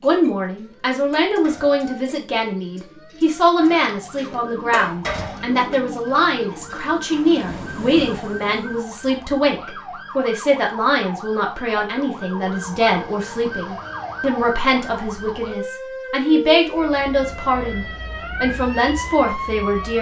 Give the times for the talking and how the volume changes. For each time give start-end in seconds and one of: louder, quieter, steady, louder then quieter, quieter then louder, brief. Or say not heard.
0.0-19.9 steady.